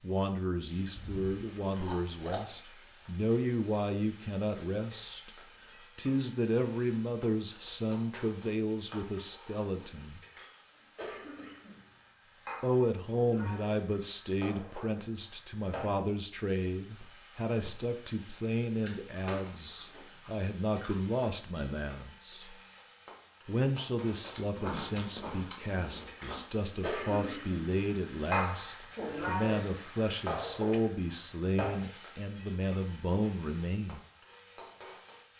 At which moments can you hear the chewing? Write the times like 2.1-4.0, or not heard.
0.9-2.6, 18.8-21.0, 24.2-26.4.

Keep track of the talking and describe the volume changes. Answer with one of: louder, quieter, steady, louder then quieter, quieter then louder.
steady.